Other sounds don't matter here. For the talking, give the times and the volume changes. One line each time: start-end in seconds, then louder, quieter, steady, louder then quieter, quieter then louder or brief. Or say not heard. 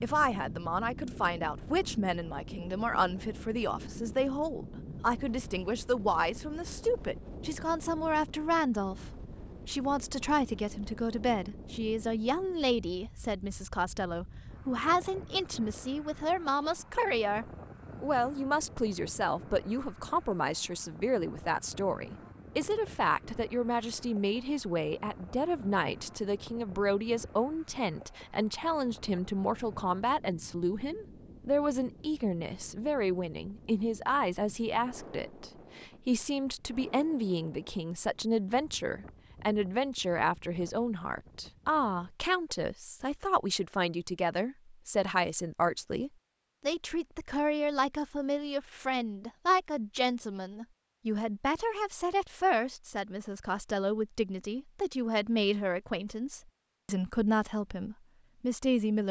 0.0-59.0 steady.